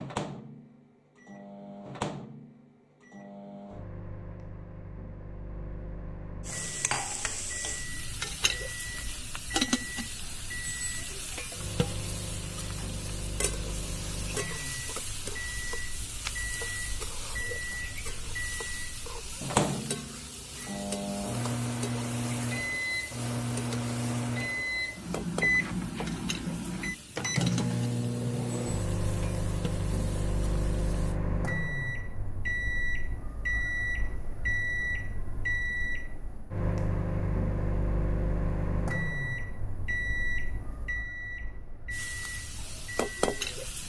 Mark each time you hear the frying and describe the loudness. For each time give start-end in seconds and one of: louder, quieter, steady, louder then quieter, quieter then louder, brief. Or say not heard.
6.5-31.1 quieter
41.9-43.8 brief.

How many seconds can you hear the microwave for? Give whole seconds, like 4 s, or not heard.
44 s.